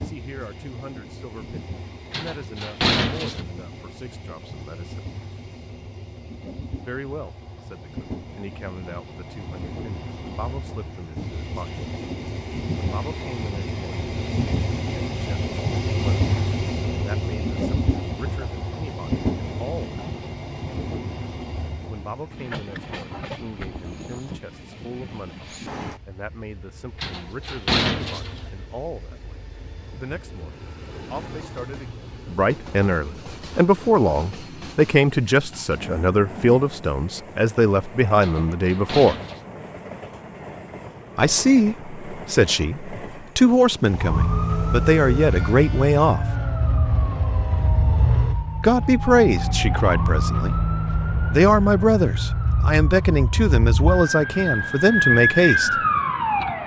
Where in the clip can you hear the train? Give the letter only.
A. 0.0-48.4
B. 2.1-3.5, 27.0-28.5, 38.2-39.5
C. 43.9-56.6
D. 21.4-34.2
A.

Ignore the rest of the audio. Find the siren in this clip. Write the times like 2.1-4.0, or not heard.
43.9-56.6.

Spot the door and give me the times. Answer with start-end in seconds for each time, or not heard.
2.1-3.5, 27.0-28.5, 38.2-39.5.